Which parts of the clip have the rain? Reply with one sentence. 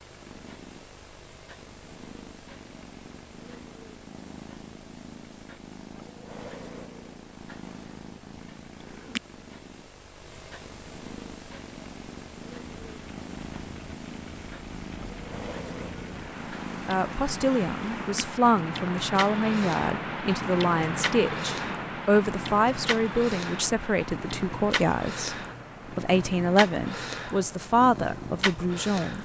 You can hear the rain from 12.7 to 29.2 s.